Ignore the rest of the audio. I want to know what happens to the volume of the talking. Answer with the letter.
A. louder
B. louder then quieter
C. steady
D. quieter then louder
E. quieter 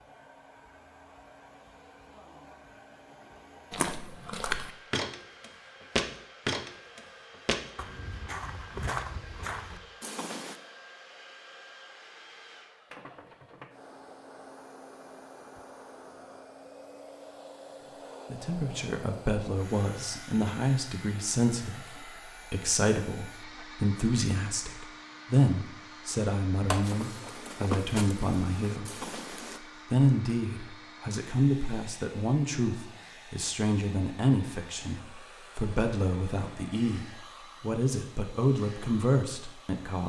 C.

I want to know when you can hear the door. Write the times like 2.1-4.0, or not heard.
26.7-27.4.